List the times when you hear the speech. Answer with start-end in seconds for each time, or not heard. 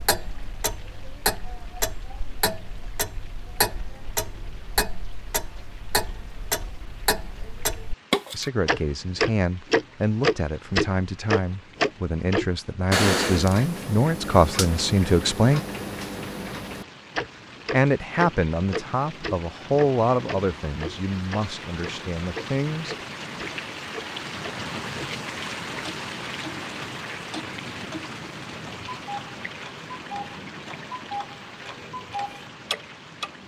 8.3-15.6, 17.7-22.9.